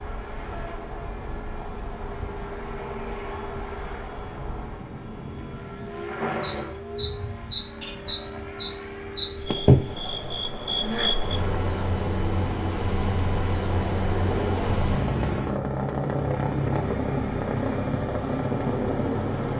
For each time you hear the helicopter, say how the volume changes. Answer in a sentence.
The helicopter can be heard from 0.0 to 19.5 s, getting louder.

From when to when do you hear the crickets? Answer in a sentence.
You can hear the crickets from 0.0 to 15.6 s.